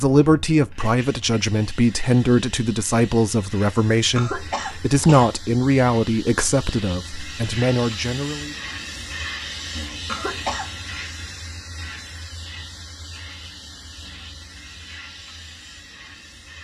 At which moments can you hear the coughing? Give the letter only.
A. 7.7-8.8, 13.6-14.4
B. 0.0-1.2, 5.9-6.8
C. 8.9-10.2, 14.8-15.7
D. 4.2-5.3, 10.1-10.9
D.